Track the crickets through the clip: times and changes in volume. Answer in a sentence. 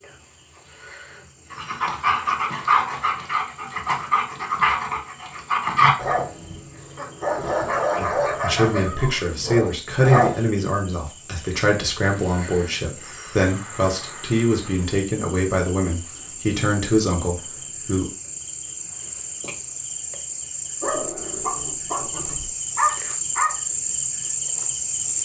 You can hear the crickets from 0.0 to 25.2 s, getting louder.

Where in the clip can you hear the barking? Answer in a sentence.
You can hear the barking from 1.5 to 10.4 s and from 20.8 to 23.6 s.